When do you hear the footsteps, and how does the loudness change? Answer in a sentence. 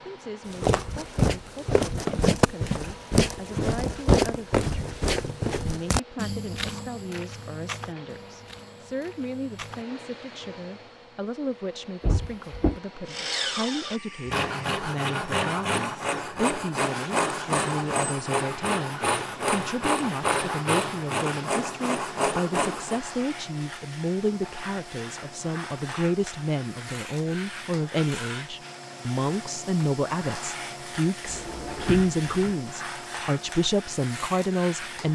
You can hear the footsteps from 0.5 to 9.8 s, getting quieter.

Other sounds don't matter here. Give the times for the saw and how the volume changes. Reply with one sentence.
You can hear the saw from 13.1 to 23.0 s, at a steady volume.